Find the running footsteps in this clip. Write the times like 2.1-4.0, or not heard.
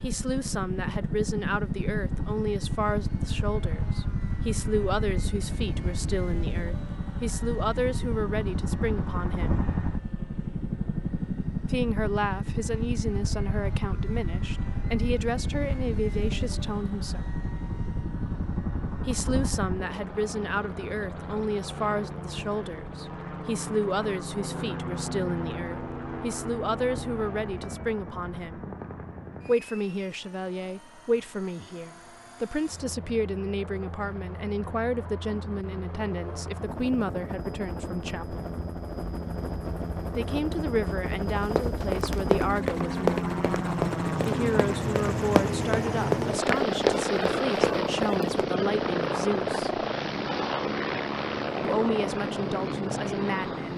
41.5-48.3.